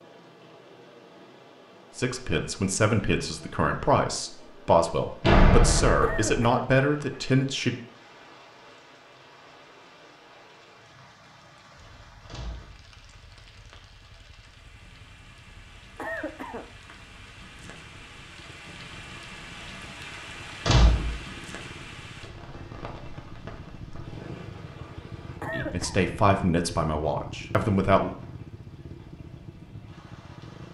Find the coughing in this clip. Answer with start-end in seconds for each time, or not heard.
6.0-6.8, 15.9-16.7, 25.4-26.0.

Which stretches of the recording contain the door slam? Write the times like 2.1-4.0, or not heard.
5.2-6.5, 12.2-12.8, 20.6-21.1.